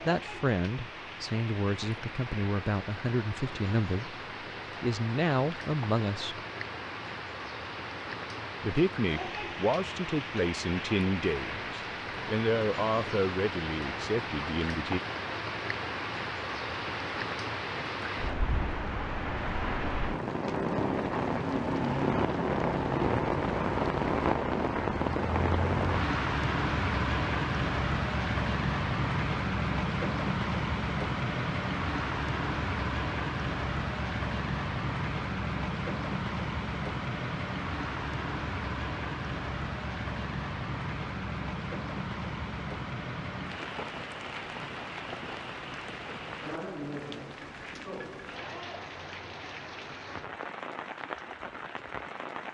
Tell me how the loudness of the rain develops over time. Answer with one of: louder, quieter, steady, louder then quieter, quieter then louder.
louder then quieter.